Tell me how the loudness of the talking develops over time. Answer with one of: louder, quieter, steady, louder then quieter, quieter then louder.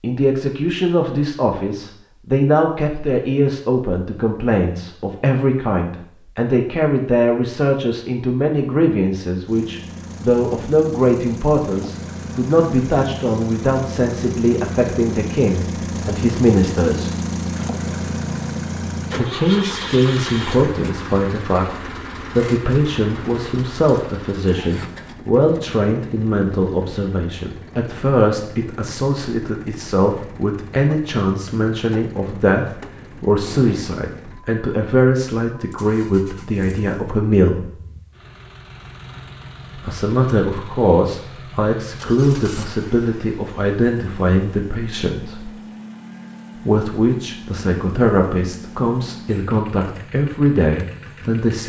steady.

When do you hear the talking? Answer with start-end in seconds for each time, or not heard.
0.0-17.1, 19.1-37.6, 39.8-45.5, 46.6-51.6.